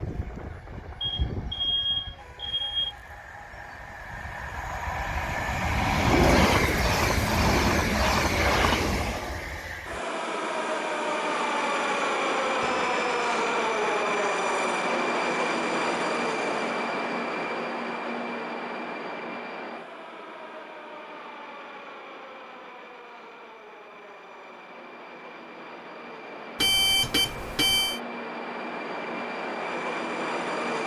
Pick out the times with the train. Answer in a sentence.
The train can be heard from 0.0 to 30.8 s.